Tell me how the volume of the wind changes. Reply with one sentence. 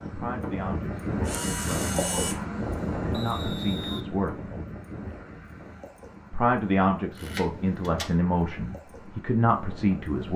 The volume of the wind goes down.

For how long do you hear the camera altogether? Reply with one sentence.
You can hear the camera for 2 seconds altogether.